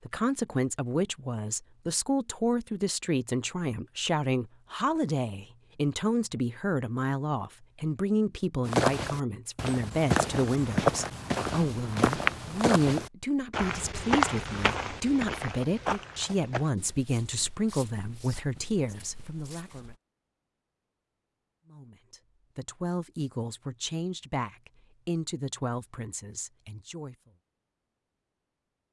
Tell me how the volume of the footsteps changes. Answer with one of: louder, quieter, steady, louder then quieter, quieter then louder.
quieter.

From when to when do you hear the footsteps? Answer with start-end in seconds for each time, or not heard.
8.7-19.9.